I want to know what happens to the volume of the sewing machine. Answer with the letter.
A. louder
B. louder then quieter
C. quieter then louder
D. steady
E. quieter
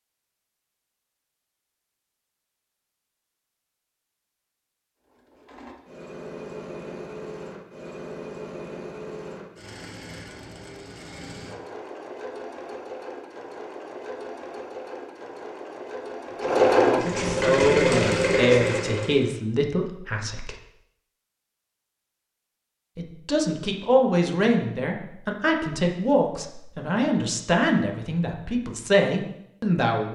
A.